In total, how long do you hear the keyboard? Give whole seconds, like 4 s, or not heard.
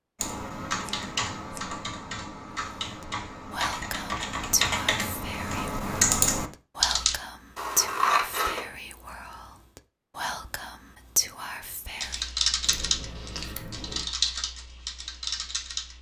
11 s.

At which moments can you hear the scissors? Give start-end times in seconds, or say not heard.
0.8-1.6, 7.5-8.7, 12.6-14.1.